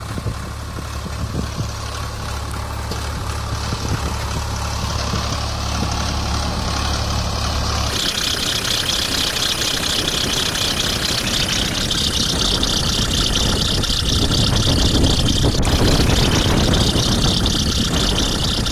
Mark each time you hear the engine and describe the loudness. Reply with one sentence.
The engine can be heard from 0.0 to 18.6 s, getting louder.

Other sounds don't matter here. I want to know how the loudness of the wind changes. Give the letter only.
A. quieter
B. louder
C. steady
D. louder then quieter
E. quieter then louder
B.